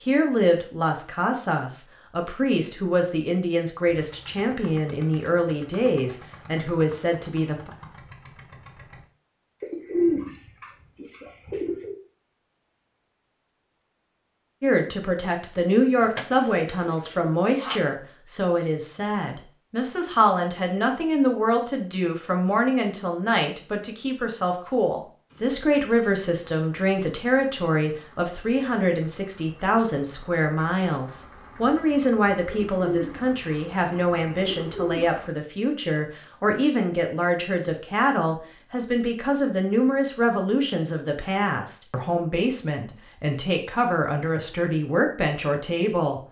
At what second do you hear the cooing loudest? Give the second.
10 s.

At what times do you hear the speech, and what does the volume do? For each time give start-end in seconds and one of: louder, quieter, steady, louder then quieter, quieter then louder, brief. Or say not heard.
0.0-7.7 steady
14.6-46.2 steady.